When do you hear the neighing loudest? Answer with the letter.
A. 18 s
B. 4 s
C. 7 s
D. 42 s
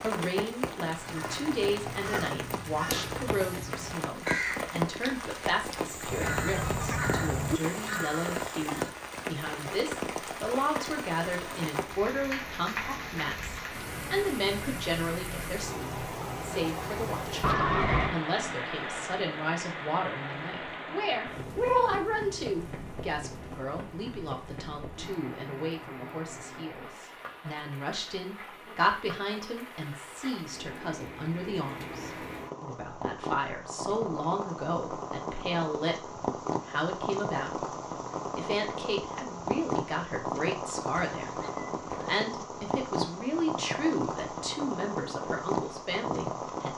A.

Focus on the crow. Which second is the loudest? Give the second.
4 s.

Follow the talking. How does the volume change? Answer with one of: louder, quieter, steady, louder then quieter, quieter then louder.
steady.